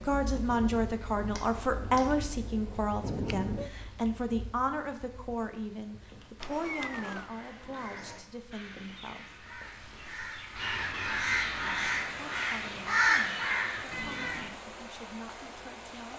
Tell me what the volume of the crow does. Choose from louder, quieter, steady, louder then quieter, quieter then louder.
louder.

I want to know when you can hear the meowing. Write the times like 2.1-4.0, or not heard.
3.0-3.7, 6.4-7.3, 13.9-14.6.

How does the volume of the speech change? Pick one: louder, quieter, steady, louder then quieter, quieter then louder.
quieter.